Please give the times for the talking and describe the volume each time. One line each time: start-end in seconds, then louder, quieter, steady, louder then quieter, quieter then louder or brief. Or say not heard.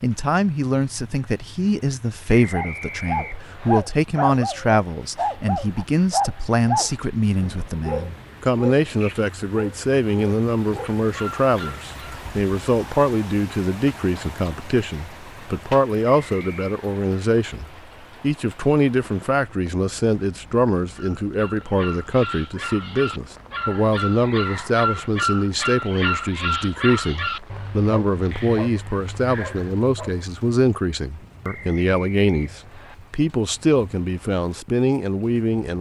0.0-35.7 steady.